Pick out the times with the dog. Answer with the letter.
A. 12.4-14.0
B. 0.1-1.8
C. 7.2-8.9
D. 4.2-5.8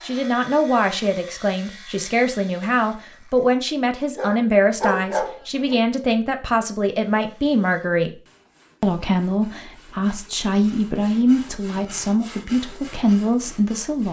D.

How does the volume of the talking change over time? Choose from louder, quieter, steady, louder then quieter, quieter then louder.
steady.